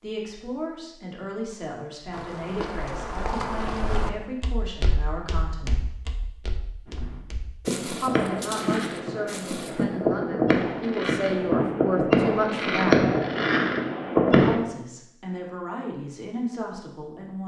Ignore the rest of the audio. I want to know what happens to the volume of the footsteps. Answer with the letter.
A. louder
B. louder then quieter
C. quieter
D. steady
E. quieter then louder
C.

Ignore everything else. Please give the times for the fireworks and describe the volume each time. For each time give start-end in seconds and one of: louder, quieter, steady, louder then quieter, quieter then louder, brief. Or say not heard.
6.8-14.6 louder.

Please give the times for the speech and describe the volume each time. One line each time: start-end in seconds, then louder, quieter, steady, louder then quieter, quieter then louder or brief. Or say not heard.
0.0-5.9 steady
8.0-13.1 louder
14.4-17.4 brief.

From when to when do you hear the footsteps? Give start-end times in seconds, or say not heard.
2.1-9.8.